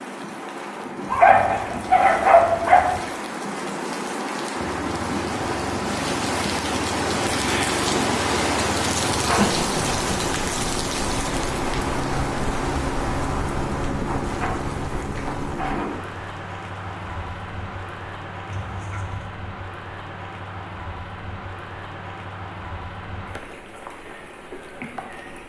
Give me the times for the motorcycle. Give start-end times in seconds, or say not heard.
4.5-15.8.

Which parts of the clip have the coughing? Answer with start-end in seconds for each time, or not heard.
9.3-10.2, 18.4-19.3.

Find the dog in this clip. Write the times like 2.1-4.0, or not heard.
1.1-3.0.